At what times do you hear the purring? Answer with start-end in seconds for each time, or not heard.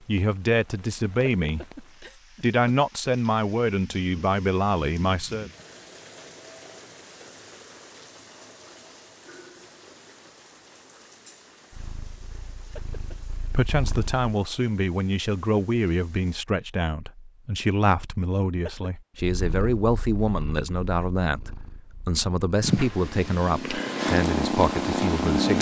11.7-14.2, 19.2-25.5.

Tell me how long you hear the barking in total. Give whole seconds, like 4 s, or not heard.
not heard.